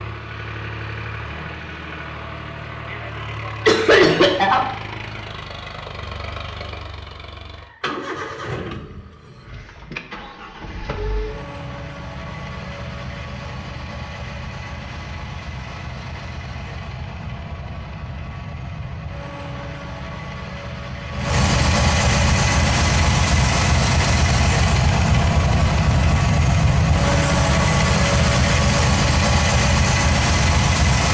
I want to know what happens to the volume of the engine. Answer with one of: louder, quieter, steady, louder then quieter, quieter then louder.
louder.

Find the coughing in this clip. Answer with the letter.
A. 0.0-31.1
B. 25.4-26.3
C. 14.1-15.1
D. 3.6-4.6
D.